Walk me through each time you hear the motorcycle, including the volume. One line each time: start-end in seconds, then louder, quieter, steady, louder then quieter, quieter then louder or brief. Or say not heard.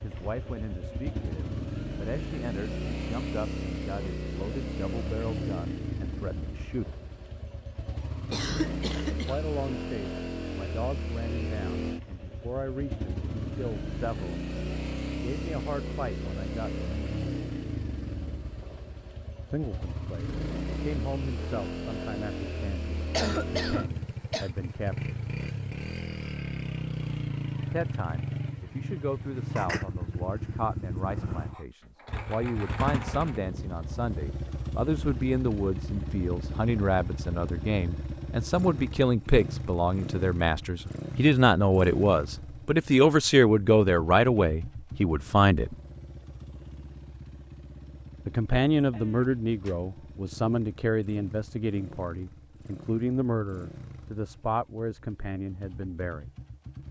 0.0-56.8 quieter.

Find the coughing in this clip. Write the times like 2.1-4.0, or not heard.
8.3-9.4, 23.1-24.5, 48.9-49.9.